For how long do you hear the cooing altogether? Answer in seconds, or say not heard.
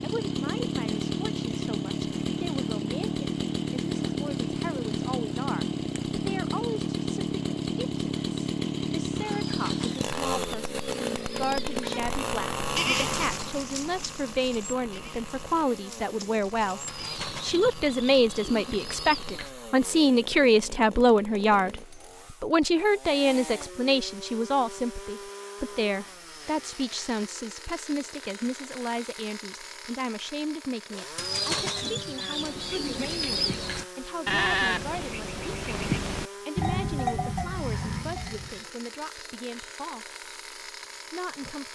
8 s.